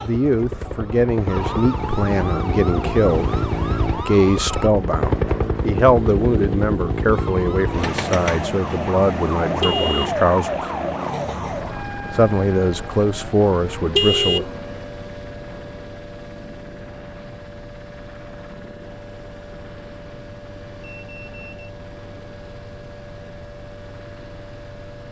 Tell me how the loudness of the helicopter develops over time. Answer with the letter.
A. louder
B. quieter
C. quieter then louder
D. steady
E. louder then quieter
B.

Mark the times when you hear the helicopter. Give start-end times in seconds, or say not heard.
0.0-25.0.